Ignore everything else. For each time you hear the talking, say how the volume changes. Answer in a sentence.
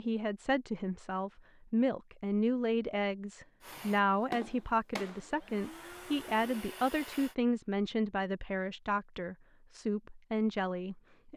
The talking can be heard from 0.0 to 11.3 s, at a steady volume.